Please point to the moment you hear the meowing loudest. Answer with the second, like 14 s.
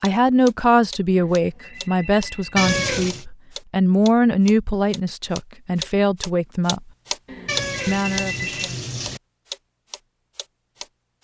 3 s.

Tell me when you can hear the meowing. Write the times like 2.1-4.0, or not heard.
2.5-3.2, 7.5-9.2.